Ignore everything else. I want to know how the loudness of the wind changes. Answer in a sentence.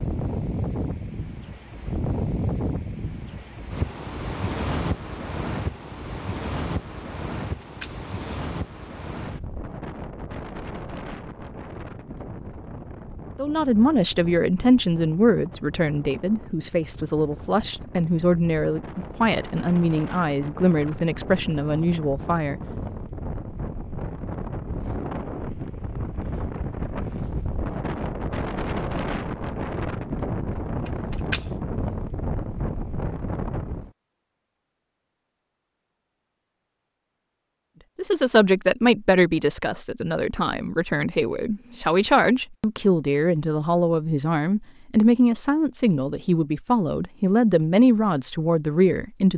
The volume of the wind goes down, then up.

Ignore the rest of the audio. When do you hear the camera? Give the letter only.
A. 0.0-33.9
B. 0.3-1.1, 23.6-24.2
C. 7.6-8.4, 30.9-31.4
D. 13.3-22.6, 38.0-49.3
C.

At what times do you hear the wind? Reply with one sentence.
You can hear the wind from 0.0 to 33.9 s.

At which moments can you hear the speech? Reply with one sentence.
The speech can be heard from 13.3 to 22.6 s and from 38.0 to 49.3 s.